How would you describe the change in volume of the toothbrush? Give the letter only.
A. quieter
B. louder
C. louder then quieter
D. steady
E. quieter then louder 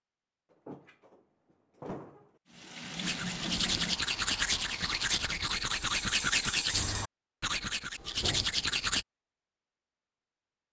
D.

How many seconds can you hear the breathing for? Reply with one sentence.
You can't hear the breathing here.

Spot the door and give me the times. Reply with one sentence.
The door can be heard from 0.5 to 2.4 s and from 8.2 to 8.6 s.